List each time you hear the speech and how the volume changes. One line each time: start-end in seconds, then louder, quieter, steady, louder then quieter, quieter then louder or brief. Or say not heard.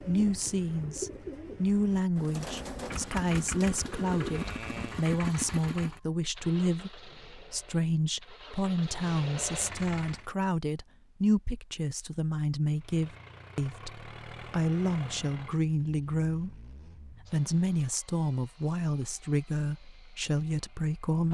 0.0-21.2 steady.